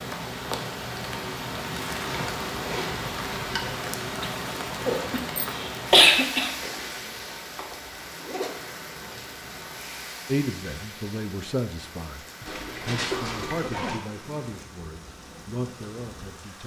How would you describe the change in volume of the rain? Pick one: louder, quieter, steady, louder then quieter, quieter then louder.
quieter.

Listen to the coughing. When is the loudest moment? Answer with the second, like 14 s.
6 s.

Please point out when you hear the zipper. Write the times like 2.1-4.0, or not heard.
2.0-3.8, 6.6-8.6, 12.4-14.0.